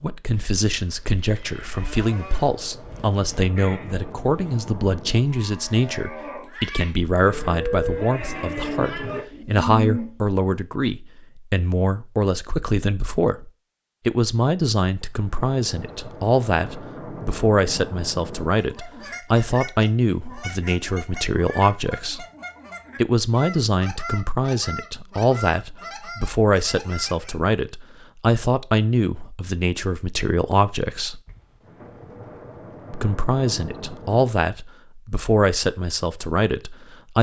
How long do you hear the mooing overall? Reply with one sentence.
You can hear the mooing for 10 seconds altogether.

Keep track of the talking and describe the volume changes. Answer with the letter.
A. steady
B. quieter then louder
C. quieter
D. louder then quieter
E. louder
A.